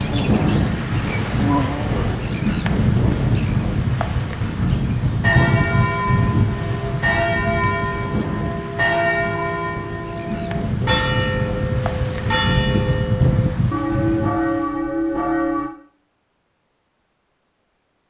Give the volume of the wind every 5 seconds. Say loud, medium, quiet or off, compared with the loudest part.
loud, loud, loud, off.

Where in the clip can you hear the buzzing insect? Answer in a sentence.
The buzzing insect can be heard from 0.0 to 2.2 s.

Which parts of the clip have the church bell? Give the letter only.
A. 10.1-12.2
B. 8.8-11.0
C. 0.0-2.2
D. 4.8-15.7
D.